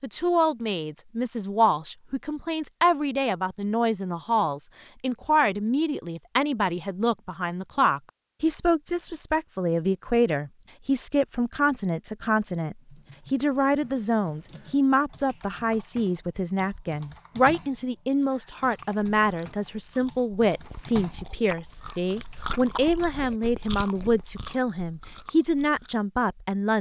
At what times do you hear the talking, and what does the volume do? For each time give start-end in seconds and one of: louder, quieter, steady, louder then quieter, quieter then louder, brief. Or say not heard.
0.0-26.7 steady.